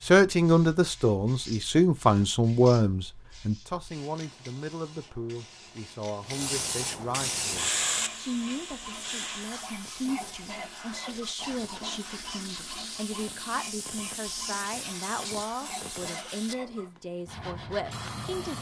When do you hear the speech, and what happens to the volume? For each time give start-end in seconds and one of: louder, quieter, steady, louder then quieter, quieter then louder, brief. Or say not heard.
0.1-18.5 quieter.